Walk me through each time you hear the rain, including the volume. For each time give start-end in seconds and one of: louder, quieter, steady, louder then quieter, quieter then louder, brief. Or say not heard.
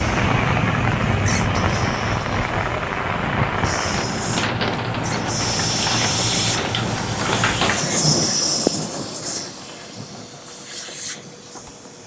0.0-12.0 quieter.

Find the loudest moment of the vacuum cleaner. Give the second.
8 s.